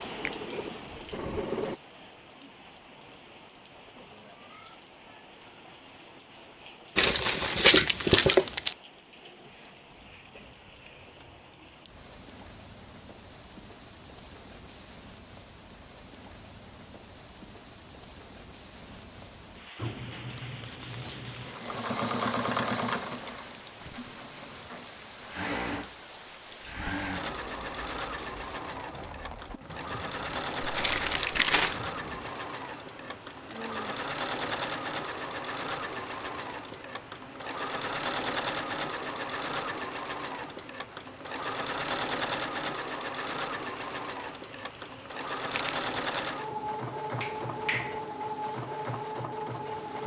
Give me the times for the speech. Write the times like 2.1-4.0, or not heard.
not heard.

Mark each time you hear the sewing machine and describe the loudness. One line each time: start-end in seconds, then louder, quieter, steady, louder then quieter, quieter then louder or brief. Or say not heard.
0.0-1.8 brief
19.8-50.0 steady.